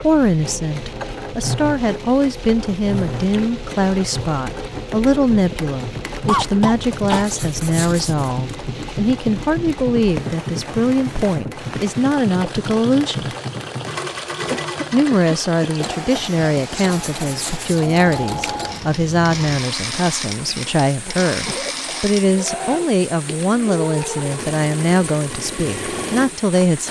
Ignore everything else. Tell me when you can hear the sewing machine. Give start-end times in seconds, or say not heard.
0.0-26.8.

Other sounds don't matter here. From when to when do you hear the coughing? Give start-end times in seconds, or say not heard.
6.2-7.2, 14.5-15.9, 21.0-22.1.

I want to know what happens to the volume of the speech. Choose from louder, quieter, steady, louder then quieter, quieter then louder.
steady.